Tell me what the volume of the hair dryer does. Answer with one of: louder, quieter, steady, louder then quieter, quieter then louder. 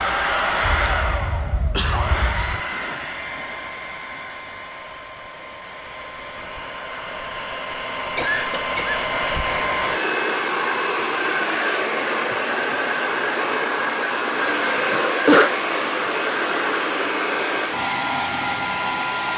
quieter then louder.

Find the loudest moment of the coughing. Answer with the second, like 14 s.
15 s.